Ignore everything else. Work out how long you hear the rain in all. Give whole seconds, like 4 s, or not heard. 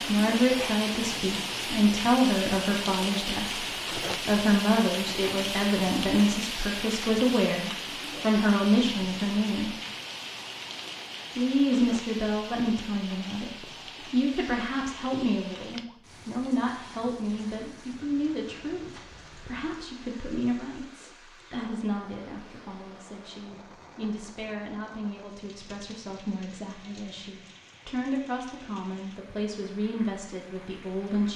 31 s.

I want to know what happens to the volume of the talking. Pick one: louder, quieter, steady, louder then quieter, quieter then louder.
quieter.